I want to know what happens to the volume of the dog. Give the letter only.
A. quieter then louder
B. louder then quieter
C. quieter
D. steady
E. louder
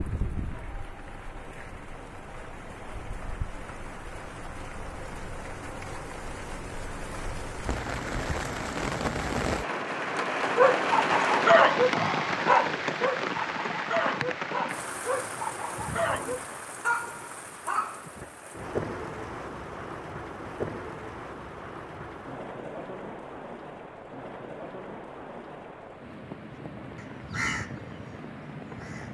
C.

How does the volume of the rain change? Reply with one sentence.
The volume of the rain goes up, then down.